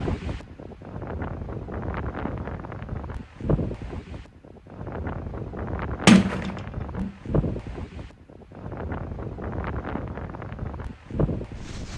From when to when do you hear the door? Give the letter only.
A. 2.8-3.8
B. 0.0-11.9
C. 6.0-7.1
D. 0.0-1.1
C.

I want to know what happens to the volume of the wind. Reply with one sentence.
The volume of the wind stays about the same.